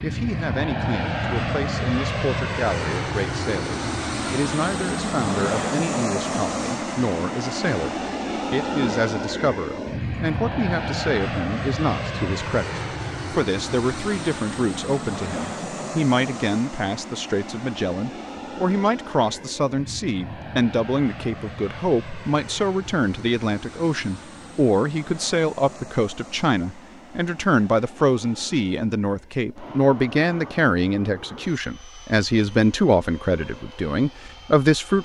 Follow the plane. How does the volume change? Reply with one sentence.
The loudness of the plane goes down.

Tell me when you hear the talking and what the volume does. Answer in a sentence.
You can hear the talking from 0.0 to 35.0 s, getting louder.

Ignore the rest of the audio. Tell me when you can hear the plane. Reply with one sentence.
You can hear the plane from 0.0 to 35.0 s.